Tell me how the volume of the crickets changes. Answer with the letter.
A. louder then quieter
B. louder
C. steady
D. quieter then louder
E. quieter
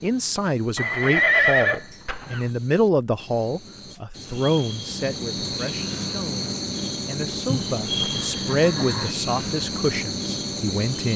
B.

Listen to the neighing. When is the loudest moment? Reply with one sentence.
The loudest moment of the neighing is at 1 second.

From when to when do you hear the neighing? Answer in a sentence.
You can hear the neighing from 0.8 to 2.5 s and from 7.5 to 9.2 s.